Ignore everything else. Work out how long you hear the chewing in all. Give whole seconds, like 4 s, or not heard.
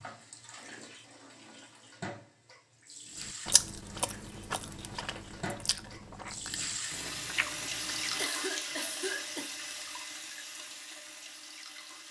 5 s.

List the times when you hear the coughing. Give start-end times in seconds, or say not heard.
8.2-10.1.